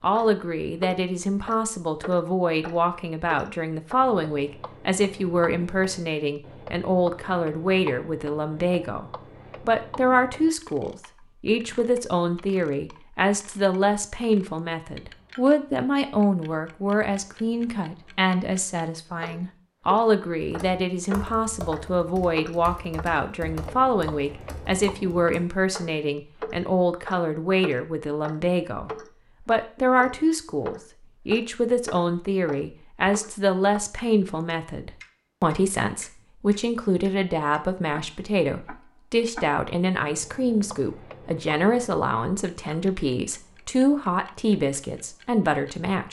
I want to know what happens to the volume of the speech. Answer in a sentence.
The volume of the speech stays about the same.